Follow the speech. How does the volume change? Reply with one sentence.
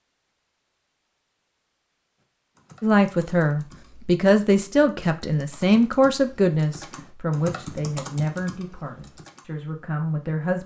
The volume of the speech goes down.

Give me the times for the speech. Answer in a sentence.
The speech can be heard from 2.8 to 10.6 s.